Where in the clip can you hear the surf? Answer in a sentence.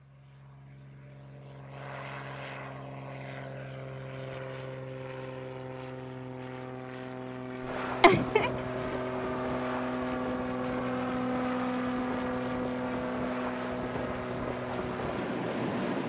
You can hear the surf from 7.6 to 16.0 s.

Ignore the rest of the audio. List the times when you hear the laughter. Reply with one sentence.
The laughter can be heard from 8.0 to 8.5 s.